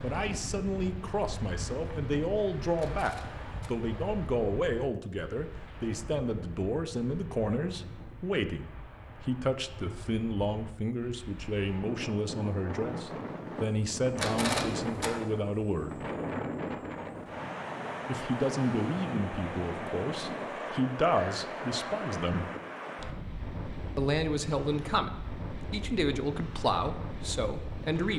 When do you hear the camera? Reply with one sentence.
The camera can be heard from 2.8 to 3.7 s and from 14.2 to 15.1 s.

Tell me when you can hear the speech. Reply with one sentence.
The speech can be heard from 0.0 to 16.0 s, from 18.1 to 22.5 s and from 23.9 to 28.1 s.